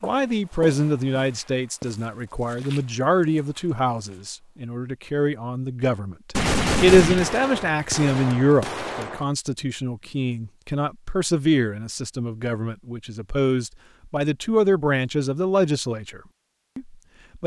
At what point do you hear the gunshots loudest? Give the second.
7 s.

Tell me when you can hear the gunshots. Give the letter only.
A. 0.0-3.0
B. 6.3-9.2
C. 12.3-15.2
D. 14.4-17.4
B.